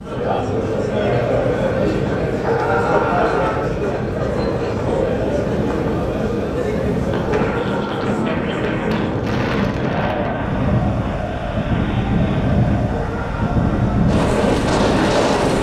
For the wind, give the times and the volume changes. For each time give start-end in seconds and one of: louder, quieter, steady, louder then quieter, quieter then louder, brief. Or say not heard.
0.0-15.5 louder.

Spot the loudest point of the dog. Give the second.
3 s.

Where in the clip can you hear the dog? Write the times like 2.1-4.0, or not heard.
2.3-3.6, 7.3-8.4, 12.9-13.9.